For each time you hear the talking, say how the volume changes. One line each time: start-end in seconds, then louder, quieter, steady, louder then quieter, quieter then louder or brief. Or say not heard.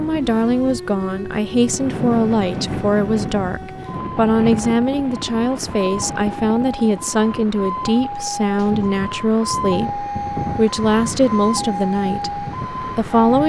0.0-12.3 steady
12.9-13.4 brief.